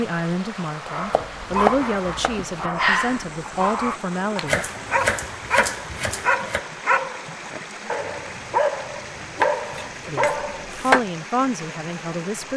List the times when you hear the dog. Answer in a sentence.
You can hear the dog from 0.8 to 10.7 s.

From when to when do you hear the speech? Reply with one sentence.
You can hear the speech from 0.0 to 4.7 s and from 10.1 to 12.5 s.